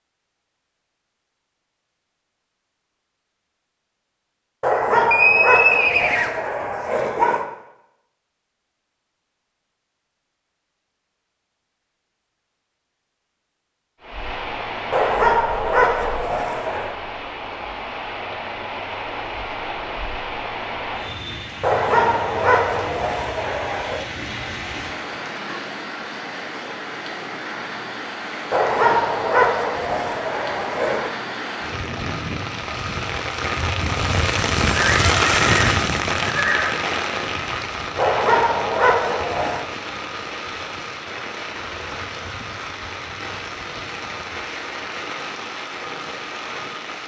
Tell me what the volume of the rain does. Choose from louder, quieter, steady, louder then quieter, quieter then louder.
louder then quieter.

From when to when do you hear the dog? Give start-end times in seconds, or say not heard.
4.6-7.5, 14.9-16.9, 21.6-24.0, 28.5-31.1, 38.0-39.6.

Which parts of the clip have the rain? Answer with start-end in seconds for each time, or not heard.
14.0-47.0.